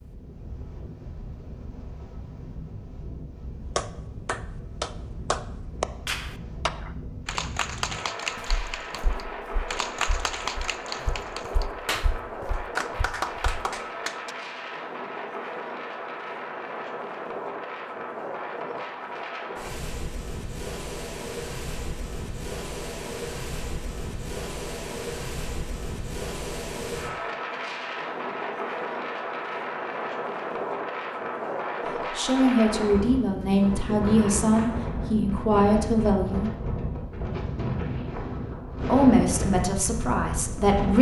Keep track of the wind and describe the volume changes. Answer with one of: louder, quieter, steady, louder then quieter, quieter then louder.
louder.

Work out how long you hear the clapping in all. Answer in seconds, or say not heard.
10 s.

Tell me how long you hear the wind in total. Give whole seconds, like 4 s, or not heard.
41 s.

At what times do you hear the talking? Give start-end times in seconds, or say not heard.
32.1-36.5, 38.9-40.9.